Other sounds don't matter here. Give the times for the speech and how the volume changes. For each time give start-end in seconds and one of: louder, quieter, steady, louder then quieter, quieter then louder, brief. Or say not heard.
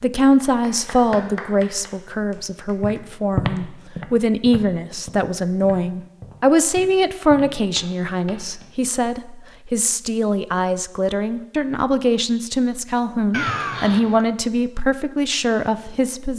0.0-16.3 steady.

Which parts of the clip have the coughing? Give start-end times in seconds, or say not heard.
13.3-14.2.